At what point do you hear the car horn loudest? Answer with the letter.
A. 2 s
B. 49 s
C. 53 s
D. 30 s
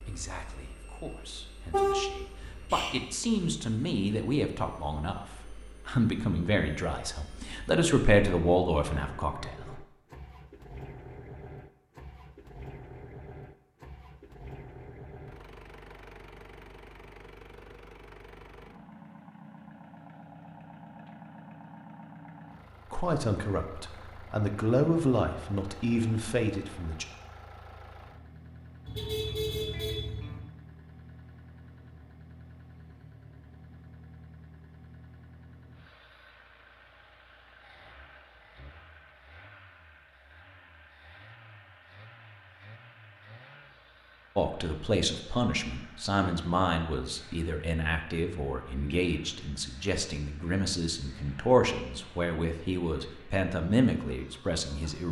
A.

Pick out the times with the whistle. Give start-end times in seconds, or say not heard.
not heard.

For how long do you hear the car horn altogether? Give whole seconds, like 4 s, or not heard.
3 s.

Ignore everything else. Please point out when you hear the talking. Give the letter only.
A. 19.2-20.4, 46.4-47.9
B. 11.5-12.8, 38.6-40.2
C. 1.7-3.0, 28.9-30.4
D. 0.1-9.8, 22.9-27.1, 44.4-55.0
D.